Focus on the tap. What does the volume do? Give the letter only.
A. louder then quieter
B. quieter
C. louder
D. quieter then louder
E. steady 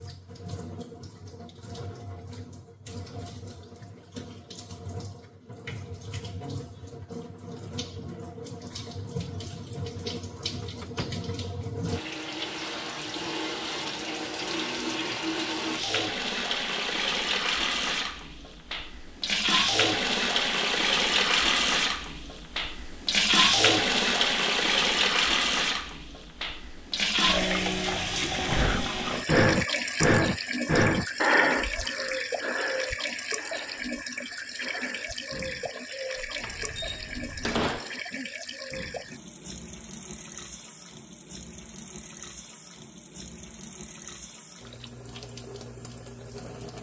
A.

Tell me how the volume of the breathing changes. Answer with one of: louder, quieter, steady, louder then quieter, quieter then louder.
quieter.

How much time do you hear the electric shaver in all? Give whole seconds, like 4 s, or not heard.
not heard.